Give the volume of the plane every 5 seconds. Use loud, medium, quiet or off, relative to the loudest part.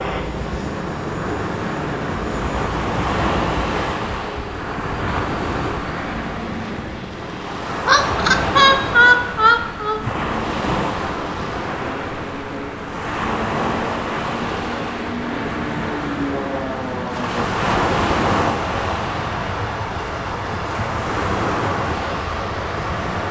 loud, medium, medium, loud, loud.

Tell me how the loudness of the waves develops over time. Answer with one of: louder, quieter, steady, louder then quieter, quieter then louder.
steady.